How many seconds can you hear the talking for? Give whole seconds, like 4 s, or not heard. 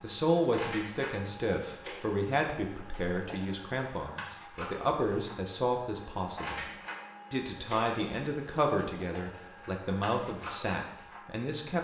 11 s.